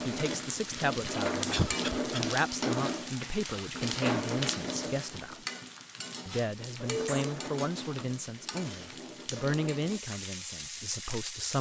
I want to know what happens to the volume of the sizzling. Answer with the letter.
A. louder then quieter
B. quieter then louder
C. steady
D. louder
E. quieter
E.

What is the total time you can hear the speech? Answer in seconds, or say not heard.
11 s.